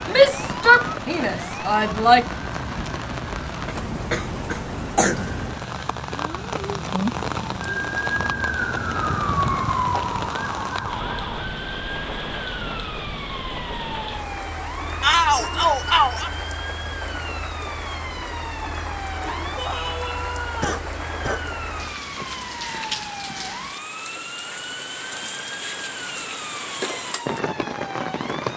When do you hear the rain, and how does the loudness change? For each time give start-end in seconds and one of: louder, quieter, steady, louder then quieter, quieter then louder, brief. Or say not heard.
0.0-28.5 steady.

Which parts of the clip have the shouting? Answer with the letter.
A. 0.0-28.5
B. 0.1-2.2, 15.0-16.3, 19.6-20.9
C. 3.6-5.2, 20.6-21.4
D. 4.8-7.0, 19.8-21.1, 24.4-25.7
B.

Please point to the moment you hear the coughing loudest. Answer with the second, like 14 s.
5 s.